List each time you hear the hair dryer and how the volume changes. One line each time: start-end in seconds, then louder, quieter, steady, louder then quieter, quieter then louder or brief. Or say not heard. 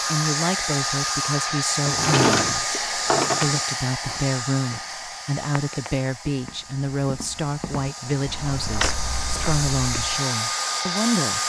0.0-11.4 quieter then louder.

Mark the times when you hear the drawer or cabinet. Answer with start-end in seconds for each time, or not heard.
1.9-3.4, 8.1-9.0.